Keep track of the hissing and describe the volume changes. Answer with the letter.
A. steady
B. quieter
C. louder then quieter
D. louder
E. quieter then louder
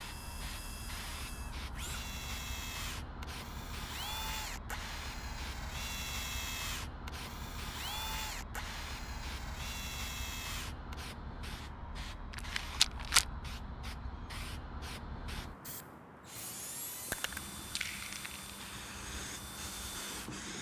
A.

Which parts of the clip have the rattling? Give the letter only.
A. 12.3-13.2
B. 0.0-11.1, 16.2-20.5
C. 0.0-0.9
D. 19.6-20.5
A.